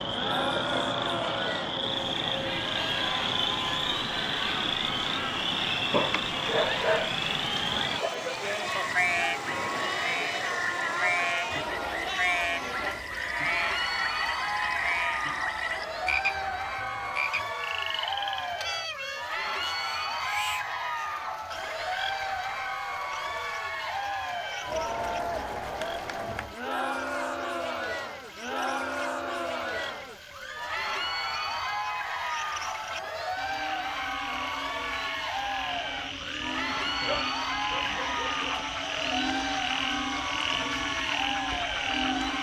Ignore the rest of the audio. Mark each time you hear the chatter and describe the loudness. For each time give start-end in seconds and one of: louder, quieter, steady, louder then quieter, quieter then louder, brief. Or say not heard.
0.0-42.3 steady.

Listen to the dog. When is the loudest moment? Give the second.
7 s.